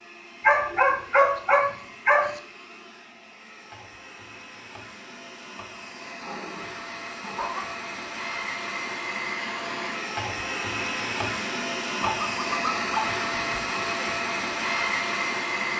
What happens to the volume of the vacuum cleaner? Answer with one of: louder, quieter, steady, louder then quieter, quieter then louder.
louder.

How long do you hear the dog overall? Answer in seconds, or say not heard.
5 s.